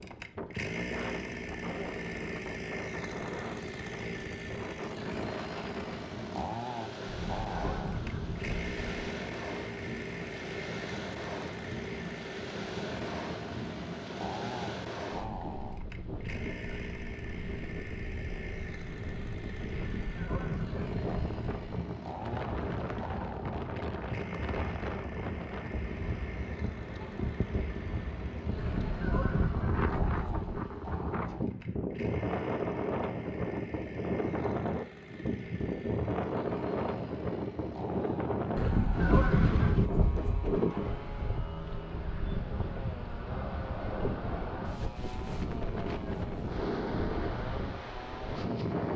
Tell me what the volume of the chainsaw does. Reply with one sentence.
The volume of the chainsaw goes down.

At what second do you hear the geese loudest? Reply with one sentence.
The volume of the geese peaks at 39 seconds.